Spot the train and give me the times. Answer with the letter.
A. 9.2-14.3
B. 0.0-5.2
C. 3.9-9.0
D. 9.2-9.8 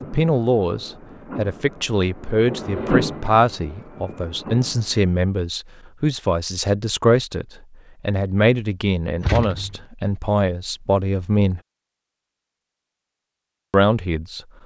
B.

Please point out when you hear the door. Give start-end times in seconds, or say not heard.
9.2-9.8.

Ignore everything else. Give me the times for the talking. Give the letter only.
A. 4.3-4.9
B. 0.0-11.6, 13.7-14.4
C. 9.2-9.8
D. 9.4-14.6
B.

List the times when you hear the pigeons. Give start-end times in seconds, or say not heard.
not heard.